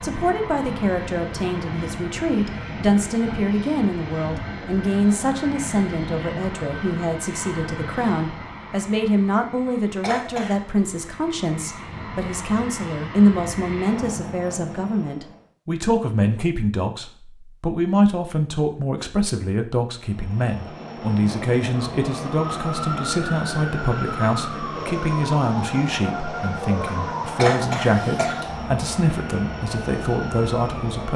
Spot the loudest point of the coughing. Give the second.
28 s.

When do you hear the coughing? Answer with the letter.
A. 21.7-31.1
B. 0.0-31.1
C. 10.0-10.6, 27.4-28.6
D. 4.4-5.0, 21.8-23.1
C.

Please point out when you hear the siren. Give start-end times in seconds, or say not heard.
21.7-31.1.